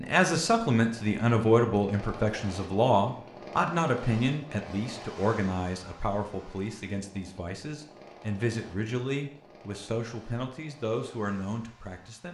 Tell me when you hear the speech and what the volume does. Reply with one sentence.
You can hear the speech from 0.0 to 12.3 s, getting quieter.